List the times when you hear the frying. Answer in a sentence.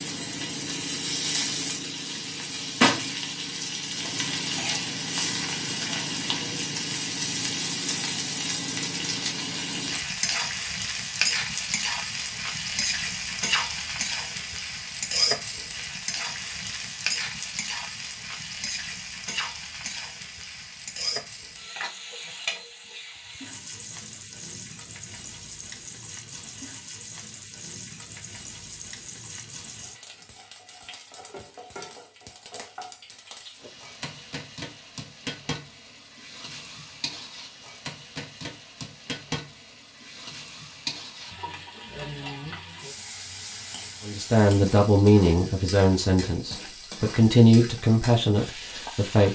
You can hear the frying from 0.0 to 49.2 s.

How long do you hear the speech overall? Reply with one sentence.
You can hear the speech for 5 seconds altogether.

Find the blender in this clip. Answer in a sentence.
You can't hear the blender here.